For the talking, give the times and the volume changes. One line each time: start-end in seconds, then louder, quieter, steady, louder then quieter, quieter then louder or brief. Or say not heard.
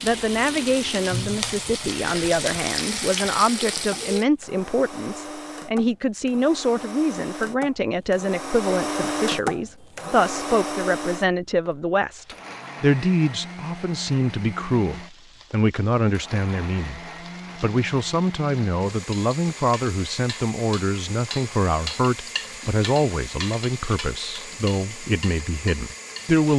0.0-26.5 steady.